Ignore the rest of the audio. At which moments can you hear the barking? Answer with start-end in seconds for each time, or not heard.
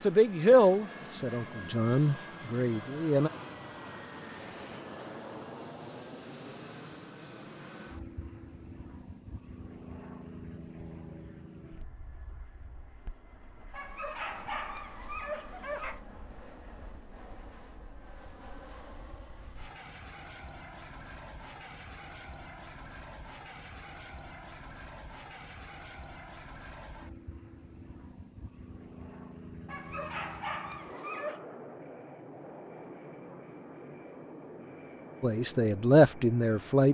13.7-16.0, 29.6-31.4.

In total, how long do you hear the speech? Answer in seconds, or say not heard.
5 s.